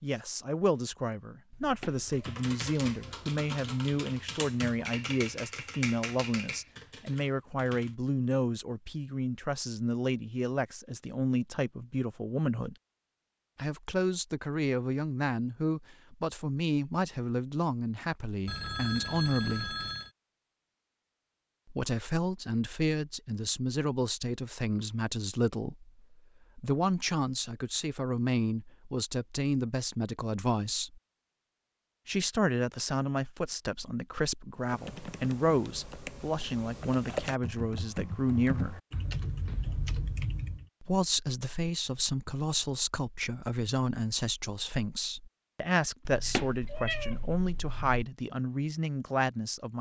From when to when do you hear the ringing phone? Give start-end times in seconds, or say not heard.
18.4-20.1.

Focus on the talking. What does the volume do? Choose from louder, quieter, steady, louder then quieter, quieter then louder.
steady.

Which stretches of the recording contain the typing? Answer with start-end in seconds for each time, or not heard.
1.9-8.0, 34.6-40.6.